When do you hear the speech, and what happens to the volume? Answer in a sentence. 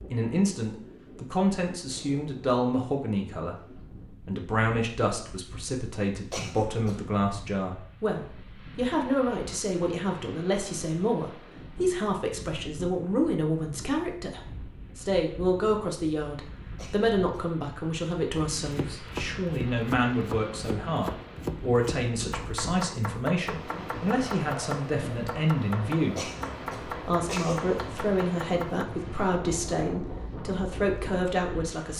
The speech can be heard from 0.1 to 31.9 s, at a steady volume.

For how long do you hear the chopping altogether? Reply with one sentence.
The chopping can be heard for 10 seconds in total.